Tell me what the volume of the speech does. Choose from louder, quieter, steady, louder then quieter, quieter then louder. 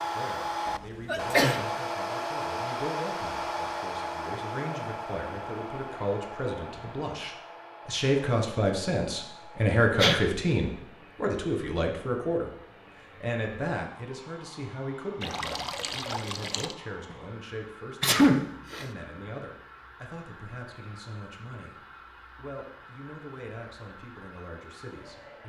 louder then quieter.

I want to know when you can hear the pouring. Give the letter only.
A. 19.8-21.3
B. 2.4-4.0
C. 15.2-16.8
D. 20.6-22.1
C.